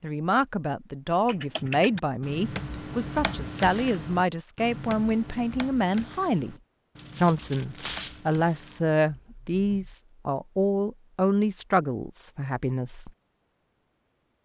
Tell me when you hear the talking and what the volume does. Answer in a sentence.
The talking can be heard from 0.0 to 6.5 s, at a steady volume; and from 7.2 to 13.1 s, at a steady volume.